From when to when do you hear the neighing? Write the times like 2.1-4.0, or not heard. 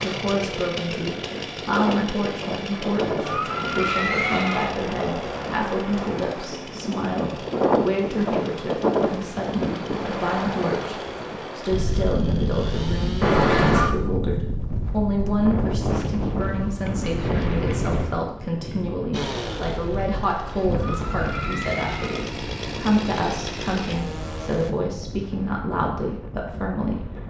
2.7-4.7, 13.2-13.9, 20.4-22.2.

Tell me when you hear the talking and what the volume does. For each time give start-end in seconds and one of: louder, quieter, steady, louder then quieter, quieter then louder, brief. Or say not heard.
0.0-27.2 steady.